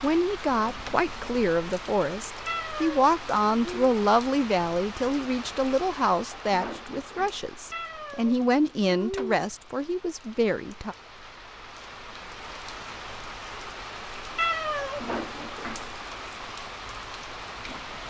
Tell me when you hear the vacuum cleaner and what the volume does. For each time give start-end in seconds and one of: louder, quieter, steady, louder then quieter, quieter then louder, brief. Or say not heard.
not heard.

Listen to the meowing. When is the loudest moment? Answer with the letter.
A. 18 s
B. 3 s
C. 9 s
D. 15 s
D.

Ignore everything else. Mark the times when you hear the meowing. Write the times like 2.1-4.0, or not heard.
2.5-3.9, 7.7-9.6, 14.3-15.5.